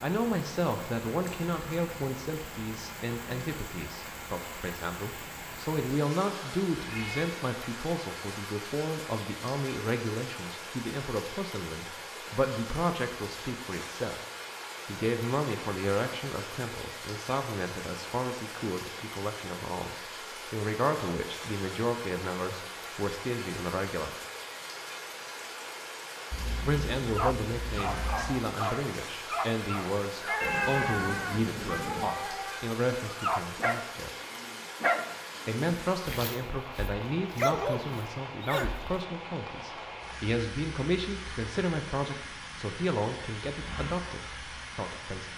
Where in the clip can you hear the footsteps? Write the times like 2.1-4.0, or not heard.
not heard.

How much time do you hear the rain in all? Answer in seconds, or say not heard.
45 s.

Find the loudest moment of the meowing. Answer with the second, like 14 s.
31 s.